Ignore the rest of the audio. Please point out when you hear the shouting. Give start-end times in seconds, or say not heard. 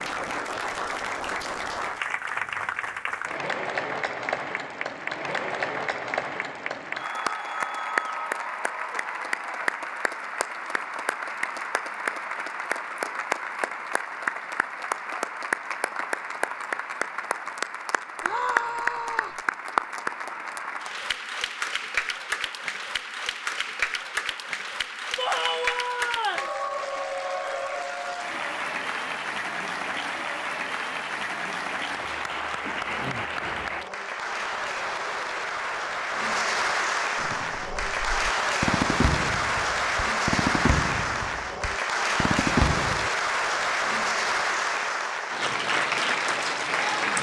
18.2-19.4, 25.1-26.5.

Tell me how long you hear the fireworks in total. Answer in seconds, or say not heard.
6 s.